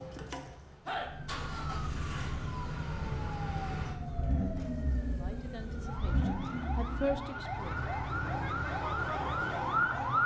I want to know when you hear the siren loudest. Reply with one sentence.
The volume of the siren peaks at 10 seconds.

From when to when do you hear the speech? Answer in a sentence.
The speech can be heard from 5.0 to 7.7 s.